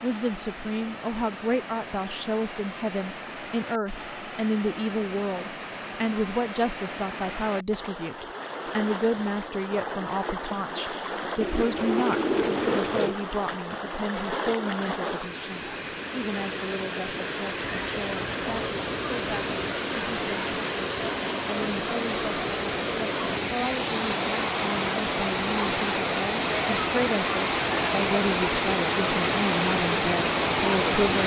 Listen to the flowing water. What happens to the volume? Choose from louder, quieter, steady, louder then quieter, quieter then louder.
louder.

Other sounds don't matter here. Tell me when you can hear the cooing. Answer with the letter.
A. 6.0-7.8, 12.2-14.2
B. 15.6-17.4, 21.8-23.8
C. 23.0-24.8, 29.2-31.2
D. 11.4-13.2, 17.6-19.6
D.